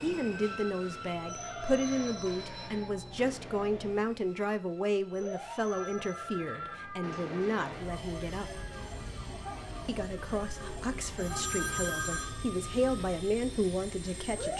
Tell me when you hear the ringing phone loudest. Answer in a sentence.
The volume of the ringing phone peaks at 12 seconds.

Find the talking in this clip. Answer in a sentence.
The talking can be heard from 0.0 to 8.7 s and from 9.8 to 14.5 s.